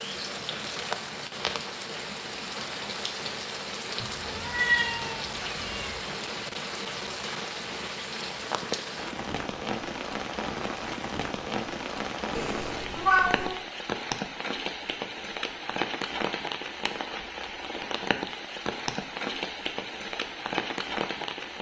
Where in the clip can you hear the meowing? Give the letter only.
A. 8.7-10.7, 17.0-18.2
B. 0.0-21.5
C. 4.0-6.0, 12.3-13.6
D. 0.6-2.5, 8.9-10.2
C.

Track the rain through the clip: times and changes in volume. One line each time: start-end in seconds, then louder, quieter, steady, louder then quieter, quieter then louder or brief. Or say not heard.
0.0-21.5 steady.